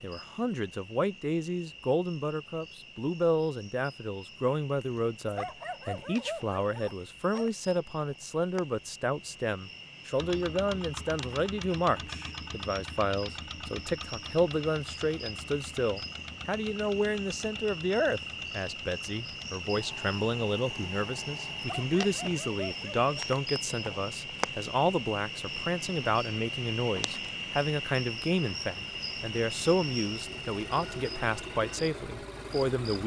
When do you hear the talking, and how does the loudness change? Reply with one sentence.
You can hear the talking from 0.0 to 33.0 s, at a steady volume.